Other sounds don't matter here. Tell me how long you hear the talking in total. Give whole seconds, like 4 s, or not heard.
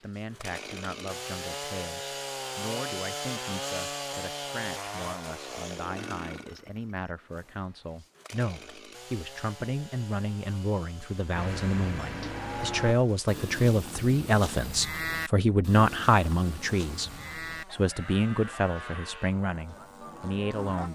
21 s.